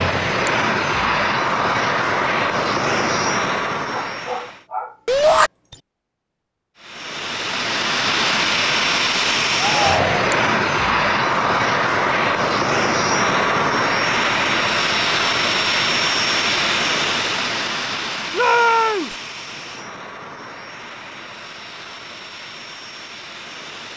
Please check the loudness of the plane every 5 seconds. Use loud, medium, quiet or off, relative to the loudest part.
loud, loud, loud, loud, quiet.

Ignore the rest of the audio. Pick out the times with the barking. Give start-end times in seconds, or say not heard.
3.9-5.8.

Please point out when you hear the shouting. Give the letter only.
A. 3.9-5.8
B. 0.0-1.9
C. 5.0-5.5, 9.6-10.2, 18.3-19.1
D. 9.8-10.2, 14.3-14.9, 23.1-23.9
C.